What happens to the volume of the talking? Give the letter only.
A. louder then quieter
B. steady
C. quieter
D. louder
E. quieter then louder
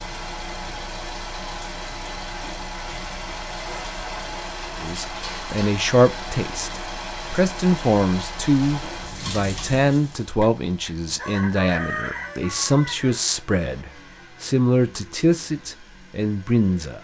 B.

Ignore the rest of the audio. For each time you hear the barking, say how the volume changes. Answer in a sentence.
The barking can't be heard in this clip.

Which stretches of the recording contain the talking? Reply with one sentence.
You can hear the talking from 4.8 to 16.9 s.